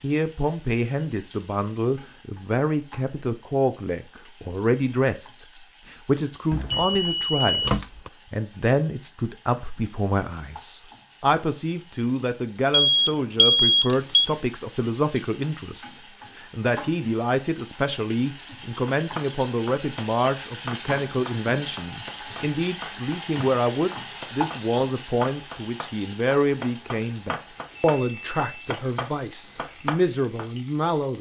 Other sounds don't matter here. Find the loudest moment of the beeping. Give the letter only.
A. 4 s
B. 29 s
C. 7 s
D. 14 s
D.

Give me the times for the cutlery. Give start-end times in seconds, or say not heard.
not heard.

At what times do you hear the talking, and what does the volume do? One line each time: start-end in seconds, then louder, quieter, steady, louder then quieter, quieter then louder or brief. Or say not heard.
0.0-31.1 steady.